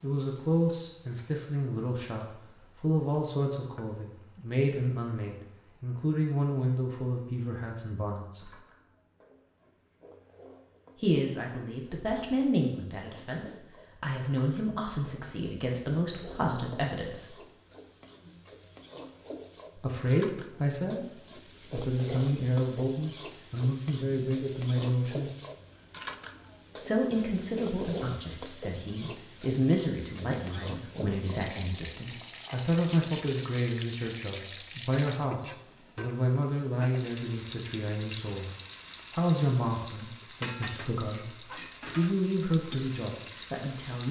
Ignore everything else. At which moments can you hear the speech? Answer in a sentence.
You can hear the speech from 0.0 to 8.5 s, from 11.0 to 17.4 s, from 19.8 to 25.3 s, from 26.8 to 38.5 s and from 39.1 to 44.0 s.